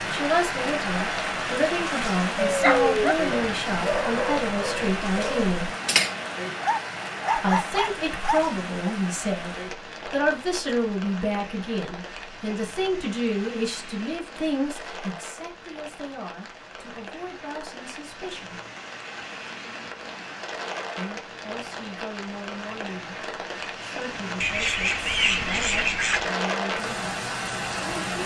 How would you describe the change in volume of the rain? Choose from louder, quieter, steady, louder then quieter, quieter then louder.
quieter then louder.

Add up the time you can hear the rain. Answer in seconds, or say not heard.
28 s.